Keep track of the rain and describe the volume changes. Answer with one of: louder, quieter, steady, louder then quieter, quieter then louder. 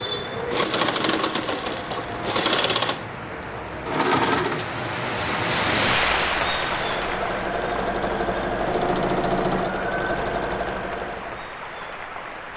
louder then quieter.